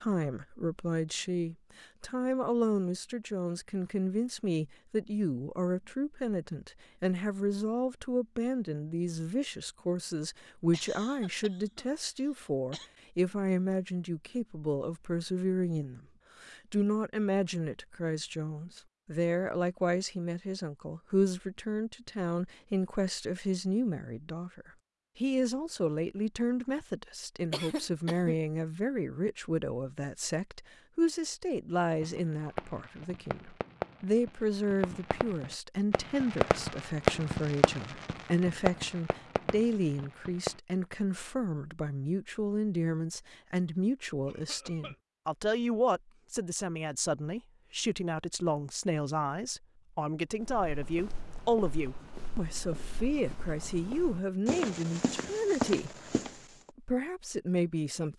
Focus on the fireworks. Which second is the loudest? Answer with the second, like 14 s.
37 s.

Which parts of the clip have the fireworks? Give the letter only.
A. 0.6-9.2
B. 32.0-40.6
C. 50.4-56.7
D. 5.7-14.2
B.